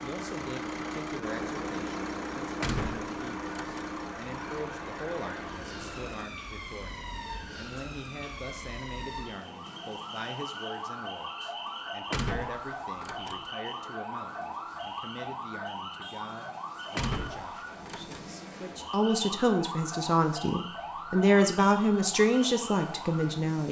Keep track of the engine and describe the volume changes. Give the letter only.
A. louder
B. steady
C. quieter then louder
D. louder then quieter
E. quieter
E.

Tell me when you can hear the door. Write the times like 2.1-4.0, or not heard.
2.6-3.9, 12.1-13.4, 16.9-18.3.